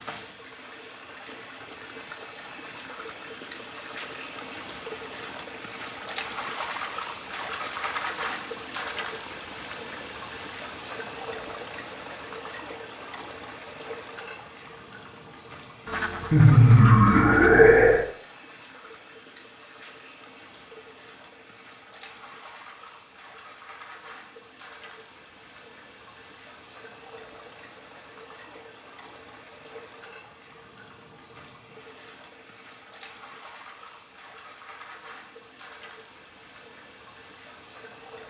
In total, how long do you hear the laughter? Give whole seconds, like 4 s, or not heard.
2 s.